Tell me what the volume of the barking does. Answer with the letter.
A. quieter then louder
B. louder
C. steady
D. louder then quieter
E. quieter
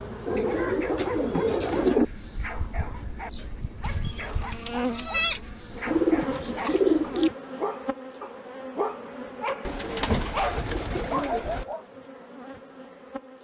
B.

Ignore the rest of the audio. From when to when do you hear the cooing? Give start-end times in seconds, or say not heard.
0.2-2.0, 5.8-7.3, 9.7-11.7.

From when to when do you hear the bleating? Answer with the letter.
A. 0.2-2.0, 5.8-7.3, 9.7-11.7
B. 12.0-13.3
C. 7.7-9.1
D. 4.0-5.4
D.